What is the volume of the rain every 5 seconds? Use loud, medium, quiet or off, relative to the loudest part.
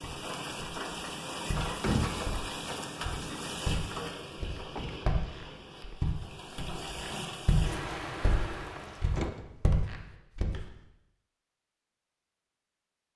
loud, loud, off.